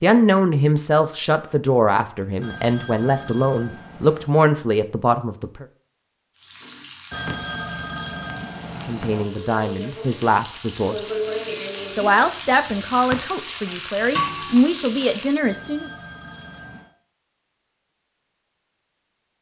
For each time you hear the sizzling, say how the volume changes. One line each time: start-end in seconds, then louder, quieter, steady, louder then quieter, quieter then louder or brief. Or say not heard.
6.3-15.4 louder.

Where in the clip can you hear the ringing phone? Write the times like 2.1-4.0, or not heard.
2.4-4.3, 7.1-9.2, 15.4-16.9.